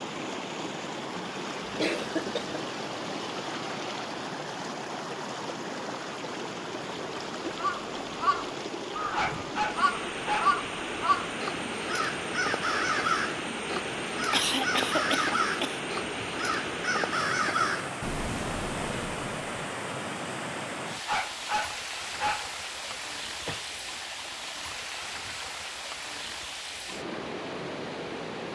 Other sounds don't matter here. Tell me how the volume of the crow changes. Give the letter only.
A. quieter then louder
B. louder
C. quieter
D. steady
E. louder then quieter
D.